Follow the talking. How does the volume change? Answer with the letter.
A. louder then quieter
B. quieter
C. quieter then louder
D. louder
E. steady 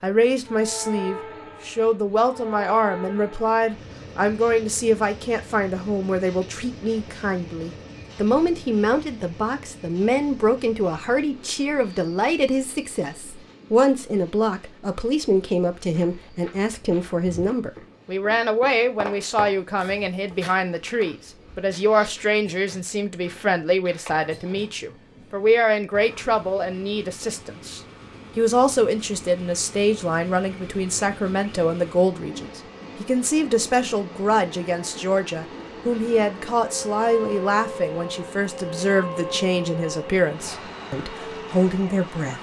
E.